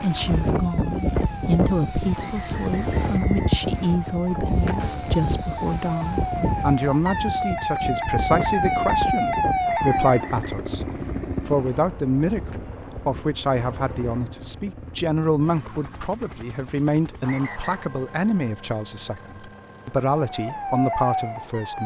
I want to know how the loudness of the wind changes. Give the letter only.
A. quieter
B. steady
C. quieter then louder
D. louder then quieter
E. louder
A.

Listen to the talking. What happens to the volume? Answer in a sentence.
The loudness of the talking stays about the same.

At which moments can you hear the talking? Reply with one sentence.
You can hear the talking from 0.0 to 10.8 s and from 11.4 to 21.8 s.